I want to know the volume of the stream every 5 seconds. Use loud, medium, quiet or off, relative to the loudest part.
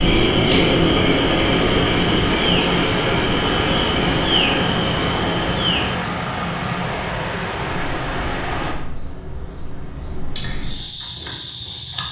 loud, loud, off.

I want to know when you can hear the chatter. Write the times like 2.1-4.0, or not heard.
not heard.